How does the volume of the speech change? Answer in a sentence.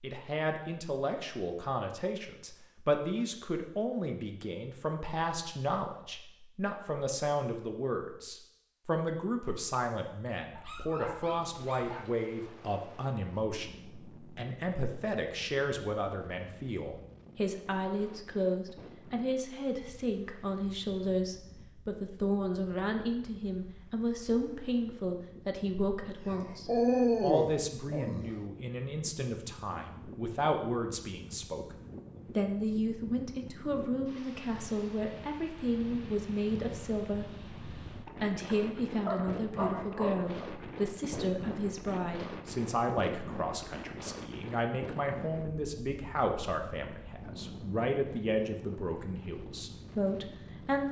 The loudness of the speech stays about the same.